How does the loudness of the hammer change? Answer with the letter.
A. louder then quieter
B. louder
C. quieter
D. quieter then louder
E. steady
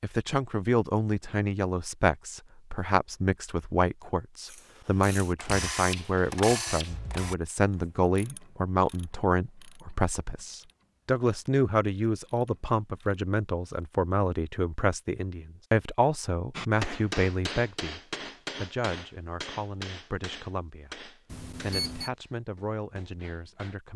C.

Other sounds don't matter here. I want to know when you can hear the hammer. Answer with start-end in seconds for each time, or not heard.
16.5-23.8.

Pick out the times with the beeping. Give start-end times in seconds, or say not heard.
21.3-22.1.